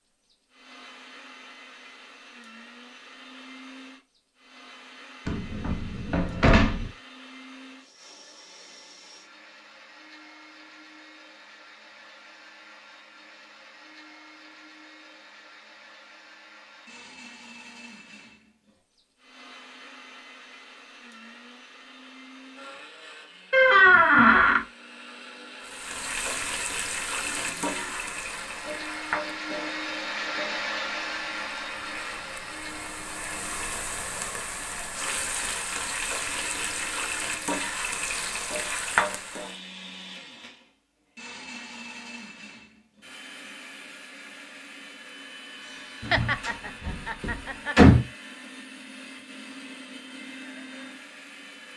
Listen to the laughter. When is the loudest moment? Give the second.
46 s.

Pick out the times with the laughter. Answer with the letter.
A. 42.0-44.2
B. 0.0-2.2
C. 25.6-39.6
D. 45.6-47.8
D.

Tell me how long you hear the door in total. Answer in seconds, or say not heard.
5 s.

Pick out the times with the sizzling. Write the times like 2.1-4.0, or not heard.
25.6-39.6.